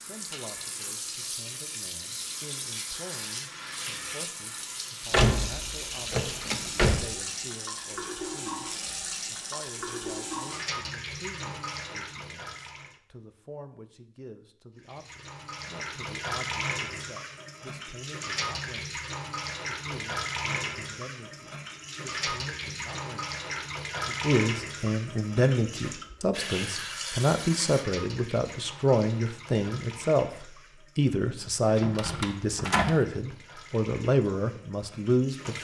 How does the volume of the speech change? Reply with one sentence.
The loudness of the speech goes up.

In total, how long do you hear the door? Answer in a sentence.
You can hear the door for 3 seconds altogether.